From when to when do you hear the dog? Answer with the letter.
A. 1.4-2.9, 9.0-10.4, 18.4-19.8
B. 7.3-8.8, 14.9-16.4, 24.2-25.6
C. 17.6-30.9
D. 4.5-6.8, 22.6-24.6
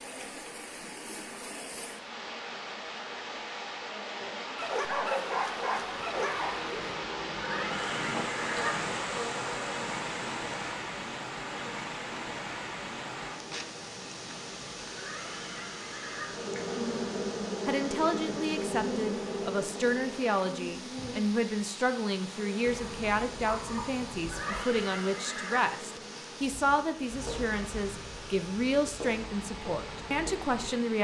D.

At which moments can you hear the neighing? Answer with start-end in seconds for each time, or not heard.
7.3-8.8, 14.9-16.4, 24.2-25.6.